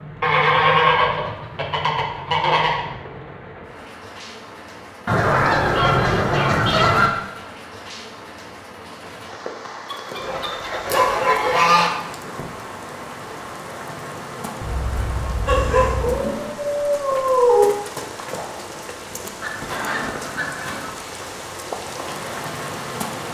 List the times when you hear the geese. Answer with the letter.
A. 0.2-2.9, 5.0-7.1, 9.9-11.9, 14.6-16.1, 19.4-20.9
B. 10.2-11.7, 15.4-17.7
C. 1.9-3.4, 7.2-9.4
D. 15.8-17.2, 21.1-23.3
A.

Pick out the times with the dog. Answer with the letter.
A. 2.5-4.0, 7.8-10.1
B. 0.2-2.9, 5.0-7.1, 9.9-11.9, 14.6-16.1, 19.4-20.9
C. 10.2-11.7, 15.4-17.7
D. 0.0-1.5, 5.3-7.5
C.